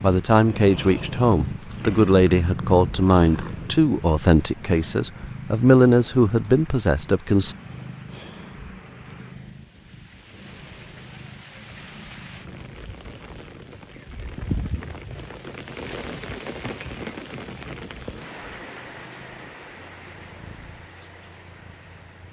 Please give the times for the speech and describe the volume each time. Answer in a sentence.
You can hear the speech from 0.0 to 7.5 s, at a steady volume.